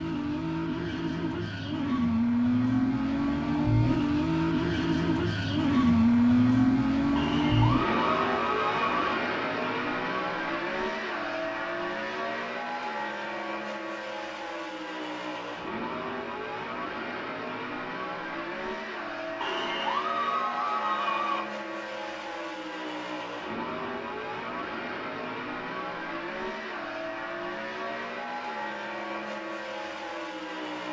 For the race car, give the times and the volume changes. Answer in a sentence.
The race car can be heard from 0.0 to 30.8 s, getting quieter.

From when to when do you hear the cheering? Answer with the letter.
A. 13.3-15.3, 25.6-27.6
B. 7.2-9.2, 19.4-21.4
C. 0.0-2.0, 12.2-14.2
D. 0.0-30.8
B.